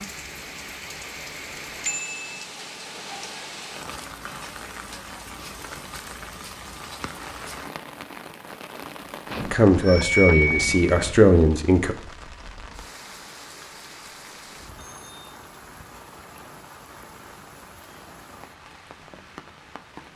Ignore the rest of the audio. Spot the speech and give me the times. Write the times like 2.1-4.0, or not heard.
9.4-11.9.